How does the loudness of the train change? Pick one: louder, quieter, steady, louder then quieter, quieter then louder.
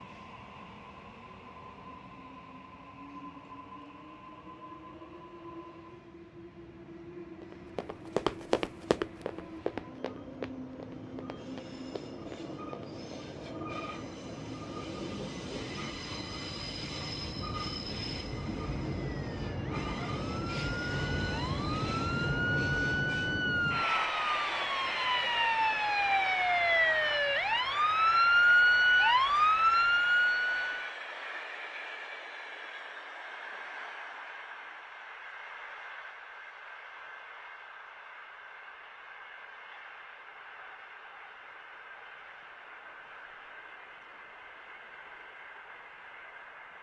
louder then quieter.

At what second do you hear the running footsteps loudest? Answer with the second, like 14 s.
8 s.